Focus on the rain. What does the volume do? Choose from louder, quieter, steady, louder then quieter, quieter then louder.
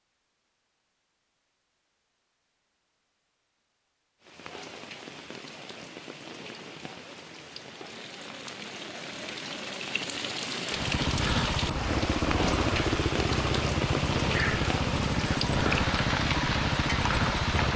louder.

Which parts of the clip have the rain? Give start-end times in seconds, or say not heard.
4.2-17.7.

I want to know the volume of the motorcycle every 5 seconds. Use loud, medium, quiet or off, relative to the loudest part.
off, off, loud, loud.